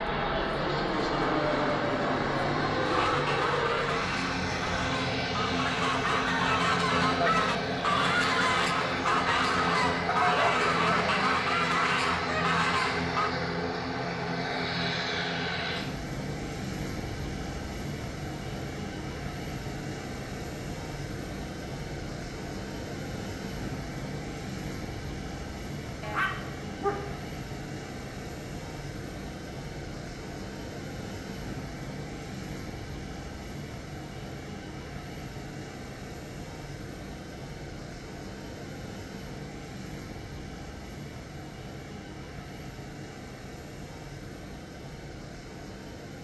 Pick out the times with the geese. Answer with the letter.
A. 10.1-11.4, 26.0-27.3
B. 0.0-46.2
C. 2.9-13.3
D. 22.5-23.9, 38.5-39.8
C.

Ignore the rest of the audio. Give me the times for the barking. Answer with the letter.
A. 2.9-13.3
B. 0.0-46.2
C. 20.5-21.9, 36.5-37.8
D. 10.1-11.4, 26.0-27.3
D.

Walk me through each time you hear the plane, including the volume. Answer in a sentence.
The plane can be heard from 0.0 to 46.2 s, getting quieter.